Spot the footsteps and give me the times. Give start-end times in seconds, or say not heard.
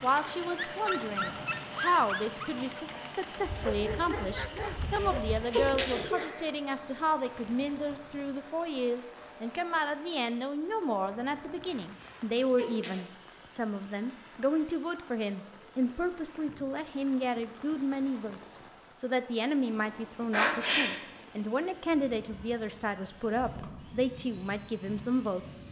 not heard.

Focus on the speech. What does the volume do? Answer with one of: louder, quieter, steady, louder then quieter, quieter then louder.
steady.